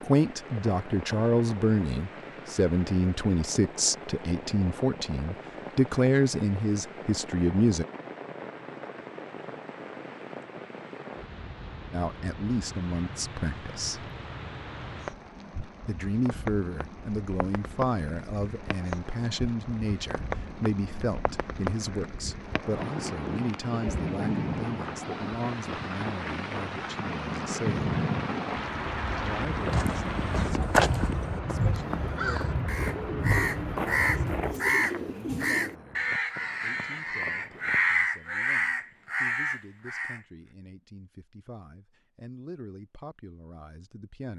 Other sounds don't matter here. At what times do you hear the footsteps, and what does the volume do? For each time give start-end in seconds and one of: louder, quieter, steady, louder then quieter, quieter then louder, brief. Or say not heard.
29.4-38.0 quieter.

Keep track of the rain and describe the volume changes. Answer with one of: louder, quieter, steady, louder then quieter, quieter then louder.
louder.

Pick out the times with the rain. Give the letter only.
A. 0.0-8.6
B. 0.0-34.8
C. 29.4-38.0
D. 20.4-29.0
B.